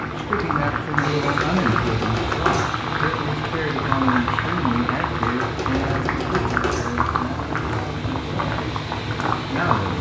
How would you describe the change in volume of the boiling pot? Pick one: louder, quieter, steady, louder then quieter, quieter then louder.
steady.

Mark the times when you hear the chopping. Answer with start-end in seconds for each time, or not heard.
1.2-2.8, 5.2-6.9.